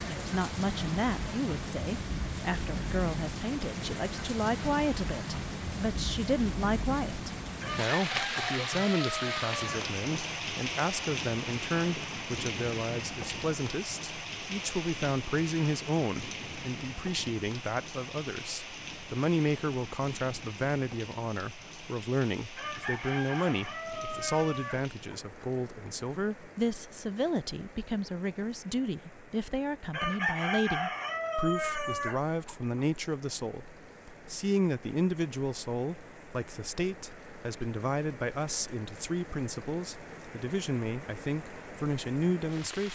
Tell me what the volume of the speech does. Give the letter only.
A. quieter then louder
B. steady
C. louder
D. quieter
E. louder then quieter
B.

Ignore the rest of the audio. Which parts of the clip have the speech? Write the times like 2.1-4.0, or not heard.
0.0-42.9.